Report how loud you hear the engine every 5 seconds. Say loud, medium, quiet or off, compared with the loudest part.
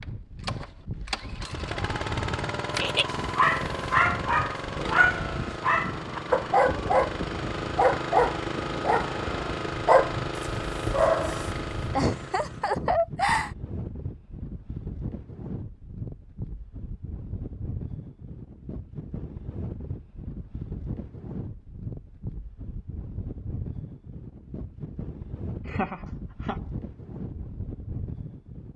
loud, loud, loud, off, off, off.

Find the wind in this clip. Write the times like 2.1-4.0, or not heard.
0.0-28.7.